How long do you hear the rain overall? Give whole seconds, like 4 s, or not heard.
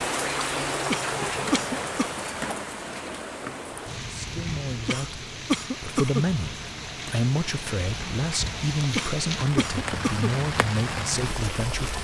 12 s.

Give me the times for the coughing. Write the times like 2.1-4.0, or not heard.
0.9-2.1, 4.8-6.2, 8.9-10.3.